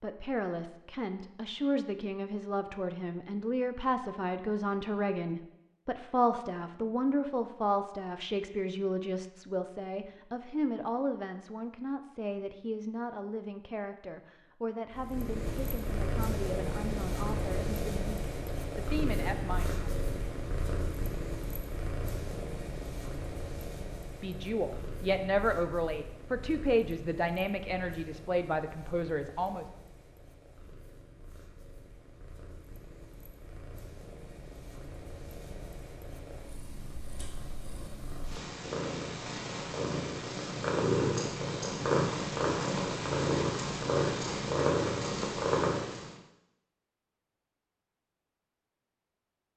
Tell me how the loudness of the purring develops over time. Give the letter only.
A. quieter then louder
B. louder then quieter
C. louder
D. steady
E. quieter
A.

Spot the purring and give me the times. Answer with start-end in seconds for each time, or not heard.
14.9-46.1.